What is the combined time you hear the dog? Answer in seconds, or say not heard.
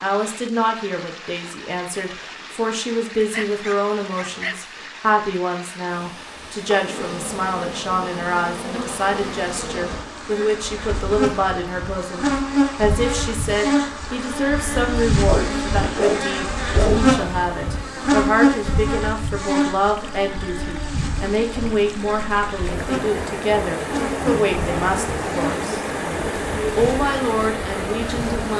3 s.